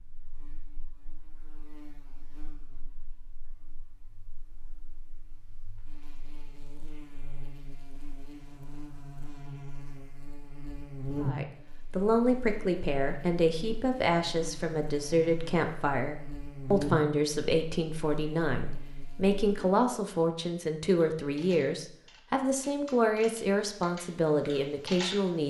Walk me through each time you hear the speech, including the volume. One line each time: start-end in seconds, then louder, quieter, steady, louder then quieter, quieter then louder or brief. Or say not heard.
11.2-25.4 steady.